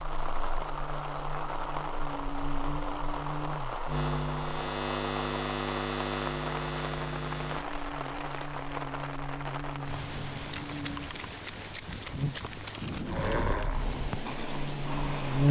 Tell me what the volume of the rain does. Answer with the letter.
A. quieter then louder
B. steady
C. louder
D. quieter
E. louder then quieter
B.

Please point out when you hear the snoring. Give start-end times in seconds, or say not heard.
13.1-15.4.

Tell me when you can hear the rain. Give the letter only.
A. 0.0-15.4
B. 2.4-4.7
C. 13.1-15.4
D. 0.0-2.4
A.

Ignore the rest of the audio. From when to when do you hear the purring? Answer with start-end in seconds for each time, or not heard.
not heard.